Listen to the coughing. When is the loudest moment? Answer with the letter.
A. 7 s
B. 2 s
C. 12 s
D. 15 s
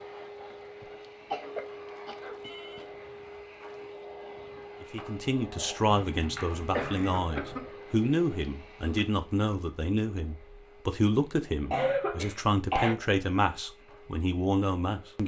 C.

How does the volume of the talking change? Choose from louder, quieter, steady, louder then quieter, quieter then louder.
steady.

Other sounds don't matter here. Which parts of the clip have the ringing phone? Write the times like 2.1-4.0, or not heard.
2.4-3.0.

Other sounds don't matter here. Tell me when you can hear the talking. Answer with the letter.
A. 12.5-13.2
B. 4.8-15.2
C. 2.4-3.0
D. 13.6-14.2
B.